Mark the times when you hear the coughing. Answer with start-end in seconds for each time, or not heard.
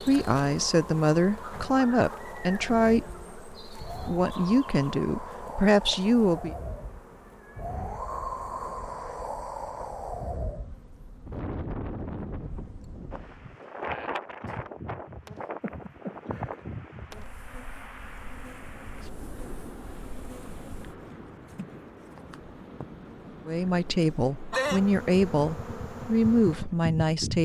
15.6-16.6.